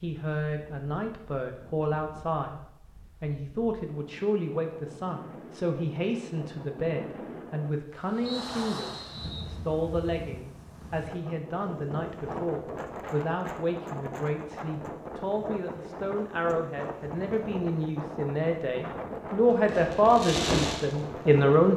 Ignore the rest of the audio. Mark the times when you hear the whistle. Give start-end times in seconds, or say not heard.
8.2-9.6.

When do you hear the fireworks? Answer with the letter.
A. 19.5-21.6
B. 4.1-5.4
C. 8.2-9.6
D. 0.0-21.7
A.